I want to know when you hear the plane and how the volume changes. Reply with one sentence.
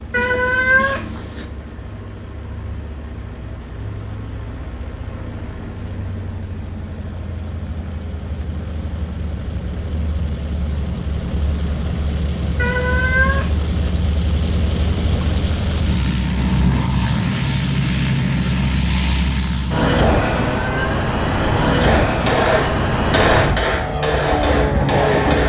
You can hear the plane from 0.0 to 25.4 s, getting louder.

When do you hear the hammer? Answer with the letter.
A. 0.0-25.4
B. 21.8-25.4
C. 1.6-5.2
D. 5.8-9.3
B.